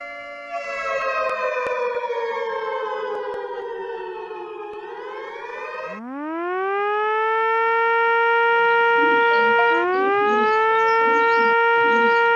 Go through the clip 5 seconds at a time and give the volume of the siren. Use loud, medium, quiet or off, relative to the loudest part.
medium, loud, loud.